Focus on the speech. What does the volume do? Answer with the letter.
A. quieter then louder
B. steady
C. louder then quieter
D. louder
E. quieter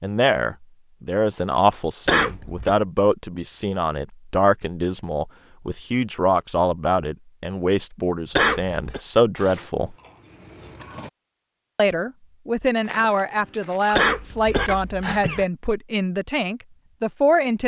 B.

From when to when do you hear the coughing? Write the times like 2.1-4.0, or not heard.
2.0-2.8, 8.3-9.0, 13.9-15.4.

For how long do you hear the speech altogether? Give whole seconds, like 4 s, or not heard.
16 s.